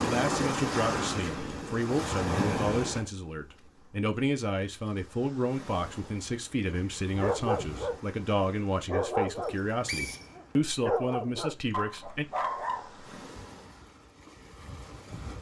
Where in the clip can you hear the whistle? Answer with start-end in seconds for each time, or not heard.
9.3-10.3.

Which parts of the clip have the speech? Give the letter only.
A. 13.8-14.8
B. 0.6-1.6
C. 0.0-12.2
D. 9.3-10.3
C.